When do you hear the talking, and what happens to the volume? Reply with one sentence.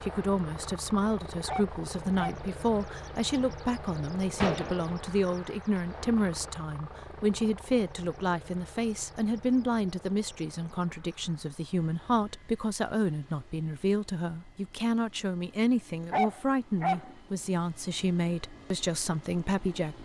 You can hear the talking from 0.0 to 19.9 s, at a steady volume.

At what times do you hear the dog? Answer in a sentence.
You can hear the dog from 1.4 to 2.5 s and from 16.1 to 17.1 s.